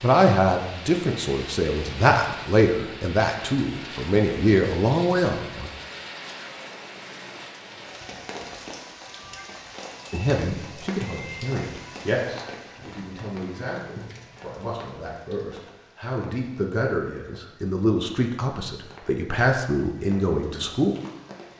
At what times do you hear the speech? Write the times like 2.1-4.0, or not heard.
0.0-5.7, 10.1-20.9.